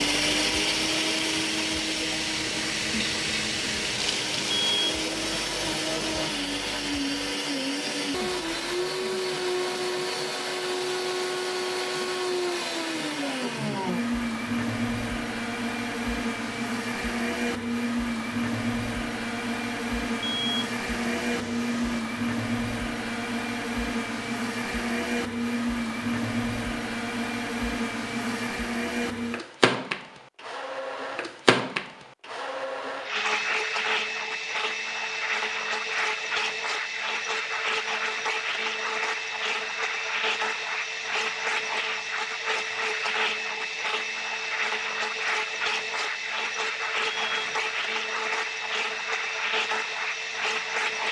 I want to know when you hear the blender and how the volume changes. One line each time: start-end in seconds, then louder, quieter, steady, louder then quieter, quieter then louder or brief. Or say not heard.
0.0-51.0 steady.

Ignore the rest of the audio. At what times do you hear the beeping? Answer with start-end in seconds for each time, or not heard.
4.5-6.3, 20.2-22.0, 47.0-47.8.